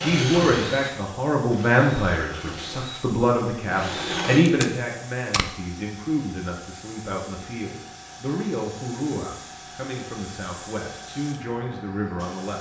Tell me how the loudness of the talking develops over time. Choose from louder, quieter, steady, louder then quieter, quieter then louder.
quieter.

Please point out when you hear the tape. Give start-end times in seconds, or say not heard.
4.5-5.6.